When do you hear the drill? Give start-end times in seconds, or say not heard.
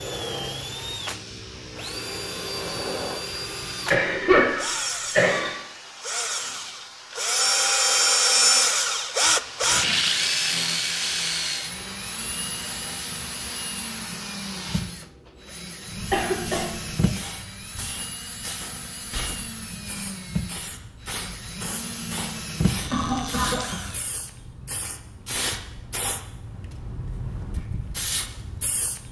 0.0-24.1.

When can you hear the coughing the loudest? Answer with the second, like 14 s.
4 s.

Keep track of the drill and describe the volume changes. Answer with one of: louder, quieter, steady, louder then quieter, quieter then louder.
louder then quieter.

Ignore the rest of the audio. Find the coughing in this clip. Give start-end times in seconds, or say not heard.
3.9-5.5, 16.1-16.6, 22.9-23.8.